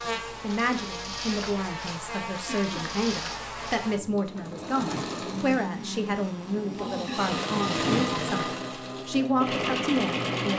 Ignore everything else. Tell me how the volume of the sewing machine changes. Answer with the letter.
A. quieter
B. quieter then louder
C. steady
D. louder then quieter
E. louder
E.